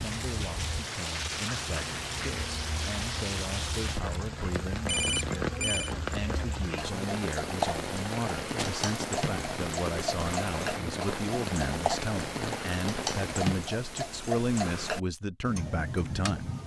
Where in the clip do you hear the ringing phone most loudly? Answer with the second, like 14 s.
5 s.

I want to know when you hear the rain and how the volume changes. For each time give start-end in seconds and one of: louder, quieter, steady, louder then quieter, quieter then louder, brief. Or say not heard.
0.0-13.8 steady.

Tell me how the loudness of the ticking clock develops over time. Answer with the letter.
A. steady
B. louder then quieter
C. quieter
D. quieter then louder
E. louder
E.